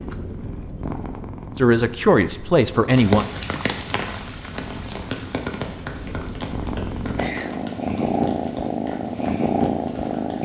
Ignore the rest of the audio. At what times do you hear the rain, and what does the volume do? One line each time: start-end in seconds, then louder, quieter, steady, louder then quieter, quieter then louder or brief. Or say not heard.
2.9-10.3 quieter.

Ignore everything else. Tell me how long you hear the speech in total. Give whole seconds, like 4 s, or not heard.
2 s.